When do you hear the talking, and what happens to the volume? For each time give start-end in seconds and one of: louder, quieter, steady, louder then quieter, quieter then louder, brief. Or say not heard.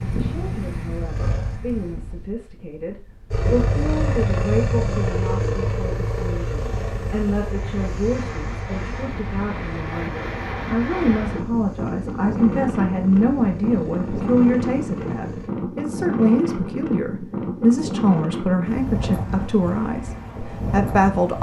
0.1-21.3 louder.